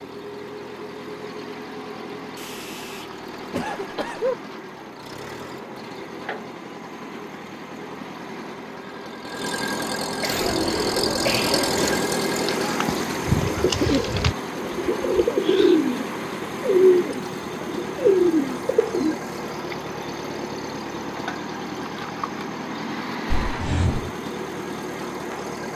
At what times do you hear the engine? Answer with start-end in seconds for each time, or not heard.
0.0-25.7.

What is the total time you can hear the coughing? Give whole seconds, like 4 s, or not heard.
5 s.